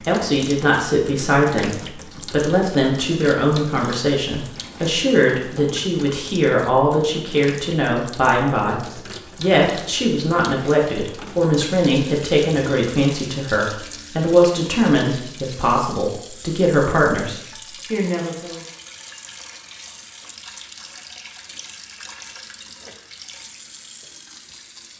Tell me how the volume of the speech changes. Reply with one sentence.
The loudness of the speech stays about the same.